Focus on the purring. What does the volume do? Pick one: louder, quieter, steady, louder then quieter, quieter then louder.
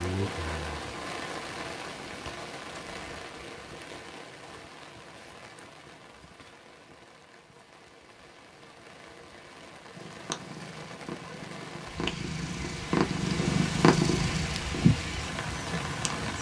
louder.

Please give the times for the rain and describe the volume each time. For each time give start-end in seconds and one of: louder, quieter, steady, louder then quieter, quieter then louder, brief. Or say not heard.
0.0-16.3 quieter then louder.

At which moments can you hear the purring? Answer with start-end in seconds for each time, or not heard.
9.9-16.3.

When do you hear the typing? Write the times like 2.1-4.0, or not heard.
not heard.